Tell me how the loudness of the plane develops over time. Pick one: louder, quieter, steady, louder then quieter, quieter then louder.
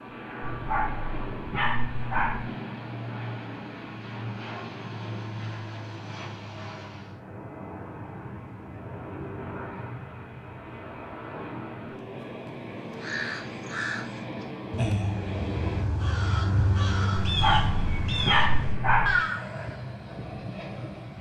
steady.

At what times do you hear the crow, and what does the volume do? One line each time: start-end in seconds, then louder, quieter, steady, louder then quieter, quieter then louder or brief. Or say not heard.
12.9-19.6 louder.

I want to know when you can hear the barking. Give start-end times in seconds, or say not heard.
0.4-2.4, 17.2-19.1.